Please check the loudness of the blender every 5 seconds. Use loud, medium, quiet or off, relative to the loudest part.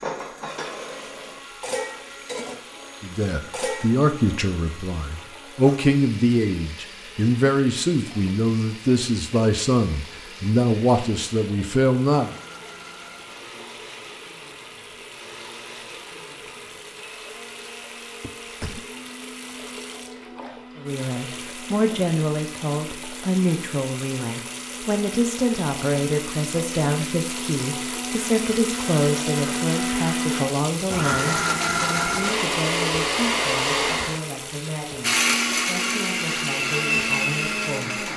quiet, quiet, quiet, quiet, quiet, medium, loud, loud.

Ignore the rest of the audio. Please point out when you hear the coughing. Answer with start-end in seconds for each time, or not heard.
18.2-18.9.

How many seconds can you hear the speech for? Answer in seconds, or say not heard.
27 s.